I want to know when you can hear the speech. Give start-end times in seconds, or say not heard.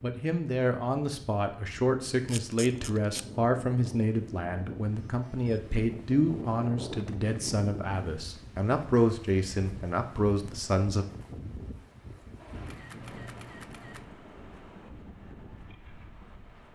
0.0-11.1.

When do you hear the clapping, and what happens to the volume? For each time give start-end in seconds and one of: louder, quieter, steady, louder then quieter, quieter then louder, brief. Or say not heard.
not heard.